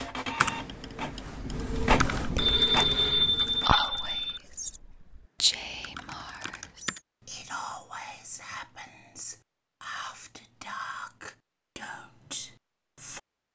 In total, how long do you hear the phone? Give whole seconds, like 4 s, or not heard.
2 s.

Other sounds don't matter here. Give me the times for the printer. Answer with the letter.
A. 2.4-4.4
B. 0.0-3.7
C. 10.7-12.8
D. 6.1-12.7
B.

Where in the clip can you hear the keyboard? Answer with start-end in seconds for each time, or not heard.
0.4-7.0.